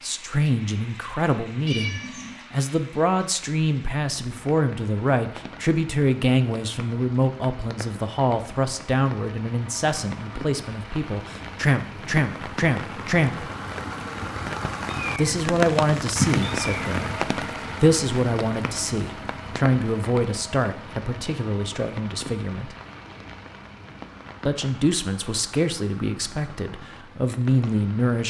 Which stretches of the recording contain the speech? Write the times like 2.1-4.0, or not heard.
0.0-13.4, 15.2-17.2, 17.8-22.8, 24.4-28.2.